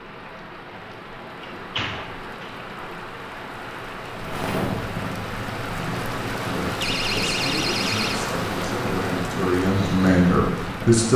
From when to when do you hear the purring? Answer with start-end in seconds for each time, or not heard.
4.0-11.1.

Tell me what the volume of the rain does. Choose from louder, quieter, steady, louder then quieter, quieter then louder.
louder.